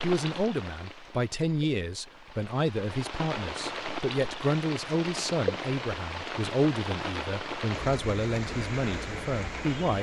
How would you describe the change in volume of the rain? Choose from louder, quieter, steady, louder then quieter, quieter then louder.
louder.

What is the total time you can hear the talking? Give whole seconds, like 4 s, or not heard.
10 s.